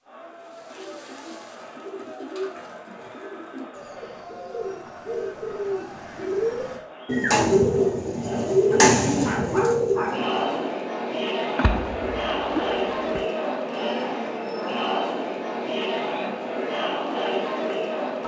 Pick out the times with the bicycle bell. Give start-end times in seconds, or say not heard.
not heard.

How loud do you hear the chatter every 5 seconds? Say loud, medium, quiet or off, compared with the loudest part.
quiet, quiet, loud, loud.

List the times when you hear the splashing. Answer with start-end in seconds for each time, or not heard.
11.6-13.2.